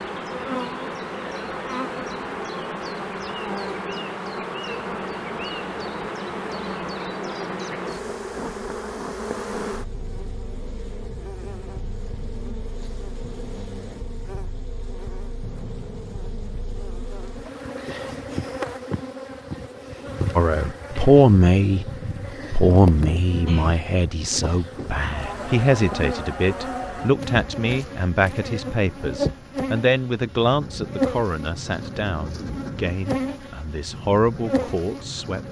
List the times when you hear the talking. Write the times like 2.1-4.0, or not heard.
20.4-21.9, 22.5-35.4.